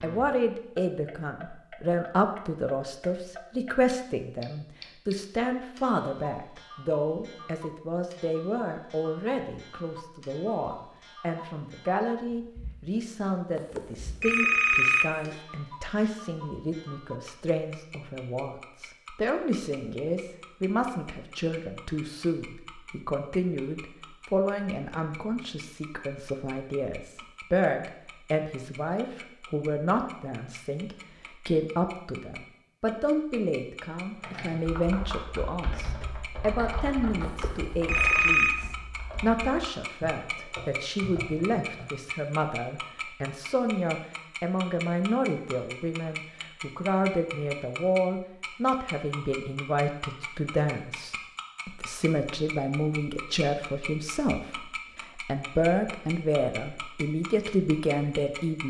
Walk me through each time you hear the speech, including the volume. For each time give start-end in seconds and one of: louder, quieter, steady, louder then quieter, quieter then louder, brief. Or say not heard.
0.0-58.6 steady.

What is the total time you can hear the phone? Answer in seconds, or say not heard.
3 s.